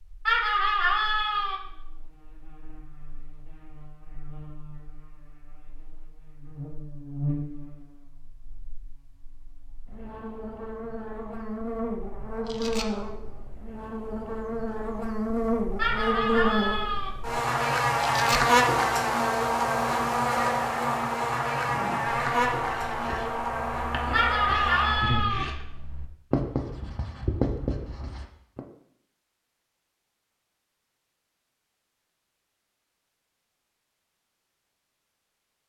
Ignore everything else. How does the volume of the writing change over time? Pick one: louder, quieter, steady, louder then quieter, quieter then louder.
louder.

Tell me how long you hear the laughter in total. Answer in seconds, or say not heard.
4 s.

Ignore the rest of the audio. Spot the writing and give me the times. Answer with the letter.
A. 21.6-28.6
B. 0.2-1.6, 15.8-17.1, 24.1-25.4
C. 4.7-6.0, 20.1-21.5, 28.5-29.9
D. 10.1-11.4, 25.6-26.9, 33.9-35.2
A.